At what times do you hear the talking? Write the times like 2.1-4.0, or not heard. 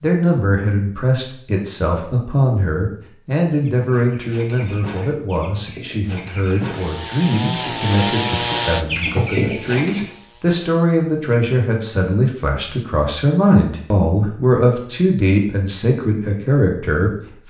0.0-17.4.